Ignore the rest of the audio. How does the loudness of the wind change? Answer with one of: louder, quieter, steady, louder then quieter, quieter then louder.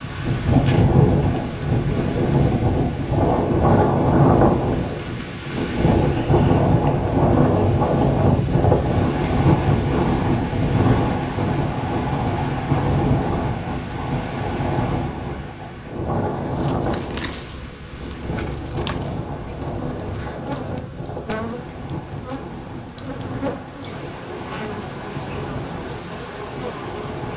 quieter.